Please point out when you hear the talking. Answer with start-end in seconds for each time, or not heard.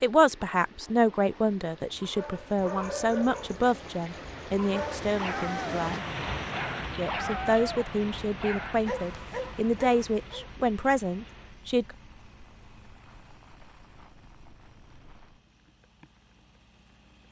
0.0-6.0, 7.0-11.9.